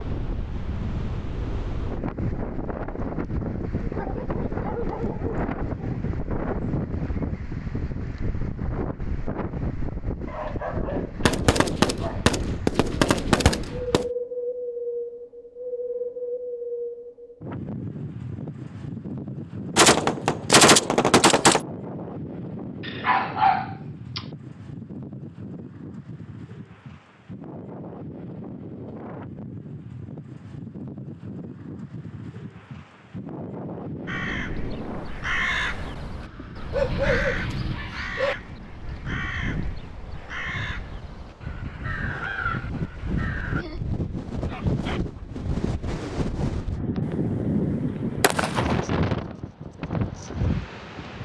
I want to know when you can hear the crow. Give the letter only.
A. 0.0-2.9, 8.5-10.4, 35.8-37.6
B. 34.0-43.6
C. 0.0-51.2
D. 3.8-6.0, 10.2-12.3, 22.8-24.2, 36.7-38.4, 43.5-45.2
B.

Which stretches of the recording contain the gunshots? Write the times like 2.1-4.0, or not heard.
11.2-14.1, 19.8-21.6, 47.0-48.9.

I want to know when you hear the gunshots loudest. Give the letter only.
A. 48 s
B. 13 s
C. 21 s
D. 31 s
C.